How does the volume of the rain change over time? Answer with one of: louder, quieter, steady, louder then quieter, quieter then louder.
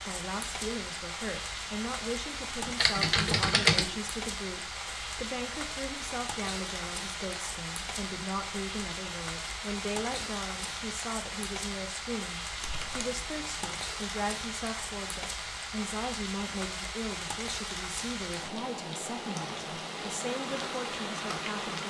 steady.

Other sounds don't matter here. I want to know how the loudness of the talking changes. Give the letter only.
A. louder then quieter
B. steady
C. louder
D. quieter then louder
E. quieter
B.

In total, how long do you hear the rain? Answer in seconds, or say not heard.
22 s.